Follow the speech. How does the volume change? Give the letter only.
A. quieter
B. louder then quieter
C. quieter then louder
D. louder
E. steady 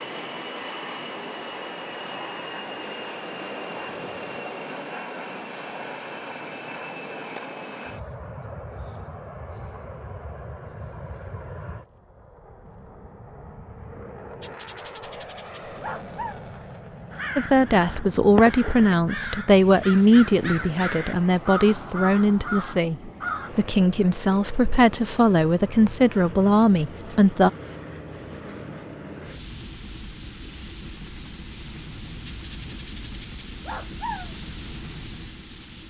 E.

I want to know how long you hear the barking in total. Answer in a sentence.
You can hear the barking for 4 seconds altogether.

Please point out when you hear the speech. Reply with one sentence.
The speech can be heard from 17.4 to 27.5 s.